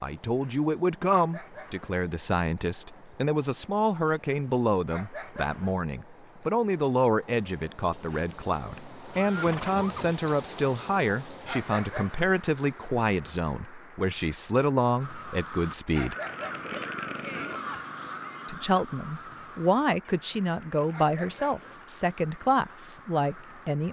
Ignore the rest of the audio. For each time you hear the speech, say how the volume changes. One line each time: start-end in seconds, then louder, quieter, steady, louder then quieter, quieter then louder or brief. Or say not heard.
0.0-16.1 steady
18.4-23.8 steady.